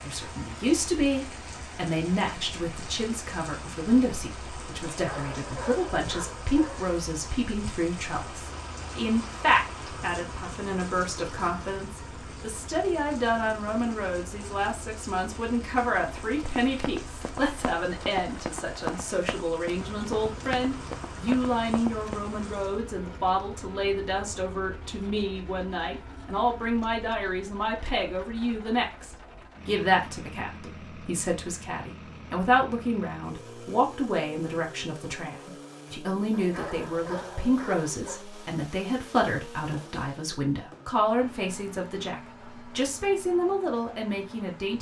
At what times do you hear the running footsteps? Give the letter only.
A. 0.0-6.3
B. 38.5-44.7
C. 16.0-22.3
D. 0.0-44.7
C.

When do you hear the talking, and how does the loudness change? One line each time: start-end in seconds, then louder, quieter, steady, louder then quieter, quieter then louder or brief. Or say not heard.
0.0-44.7 steady.